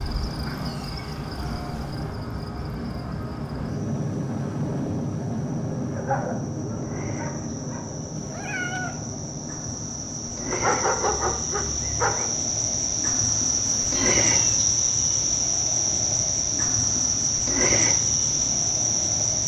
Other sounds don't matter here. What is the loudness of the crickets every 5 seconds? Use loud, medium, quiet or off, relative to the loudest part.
quiet, quiet, loud, loud.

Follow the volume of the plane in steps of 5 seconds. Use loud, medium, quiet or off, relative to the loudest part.
loud, loud, medium, medium.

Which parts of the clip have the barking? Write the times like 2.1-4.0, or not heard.
6.0-7.8, 10.5-12.3.